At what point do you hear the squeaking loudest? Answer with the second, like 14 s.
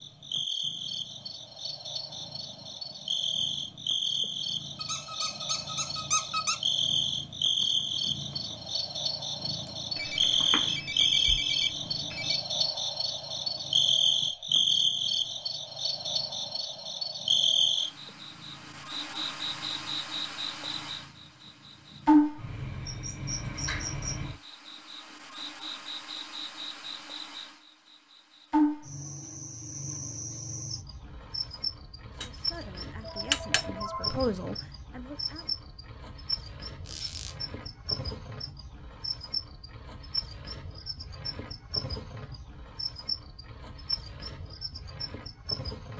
6 s.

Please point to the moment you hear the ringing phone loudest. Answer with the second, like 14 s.
33 s.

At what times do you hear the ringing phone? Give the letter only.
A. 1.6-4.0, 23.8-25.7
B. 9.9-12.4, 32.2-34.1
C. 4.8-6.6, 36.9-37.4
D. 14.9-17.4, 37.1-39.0
B.